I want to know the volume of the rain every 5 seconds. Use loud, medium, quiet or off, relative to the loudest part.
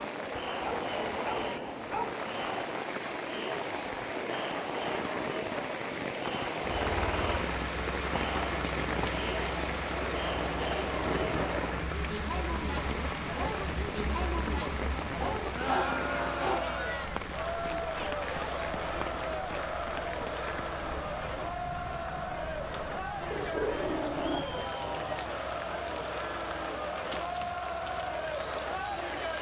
loud, loud, loud, loud, medium, medium.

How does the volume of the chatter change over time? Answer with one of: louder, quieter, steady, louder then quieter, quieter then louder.
steady.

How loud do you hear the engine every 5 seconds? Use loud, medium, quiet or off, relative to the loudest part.
off, loud, loud, medium, medium, quiet.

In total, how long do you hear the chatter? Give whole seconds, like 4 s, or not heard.
29 s.